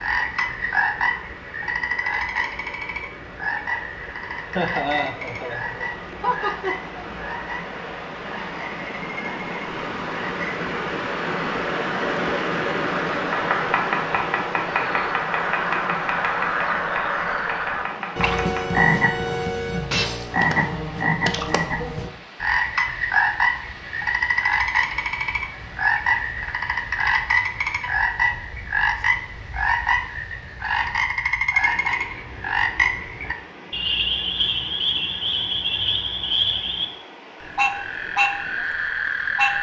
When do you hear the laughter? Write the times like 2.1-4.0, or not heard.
4.5-7.1.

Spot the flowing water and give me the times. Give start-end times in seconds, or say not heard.
0.0-39.5.